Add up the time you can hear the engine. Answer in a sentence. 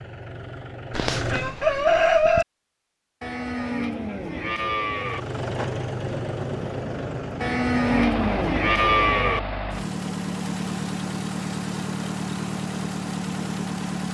You can hear the engine for 11 seconds altogether.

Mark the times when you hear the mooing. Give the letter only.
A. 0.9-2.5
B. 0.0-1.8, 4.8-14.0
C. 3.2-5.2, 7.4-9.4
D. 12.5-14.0
C.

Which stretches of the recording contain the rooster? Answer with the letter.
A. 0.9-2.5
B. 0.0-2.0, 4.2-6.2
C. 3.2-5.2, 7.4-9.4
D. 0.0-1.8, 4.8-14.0
A.